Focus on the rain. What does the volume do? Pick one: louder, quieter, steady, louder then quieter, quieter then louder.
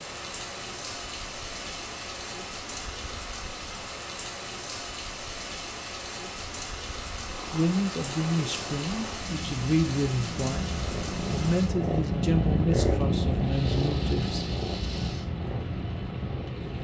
steady.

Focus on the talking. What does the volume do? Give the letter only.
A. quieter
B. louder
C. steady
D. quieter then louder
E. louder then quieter
C.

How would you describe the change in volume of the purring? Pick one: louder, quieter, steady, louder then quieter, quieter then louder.
louder then quieter.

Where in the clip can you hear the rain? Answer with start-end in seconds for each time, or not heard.
0.0-16.7.